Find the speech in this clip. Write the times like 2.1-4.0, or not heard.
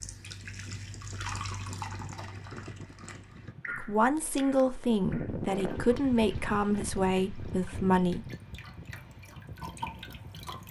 3.8-8.2.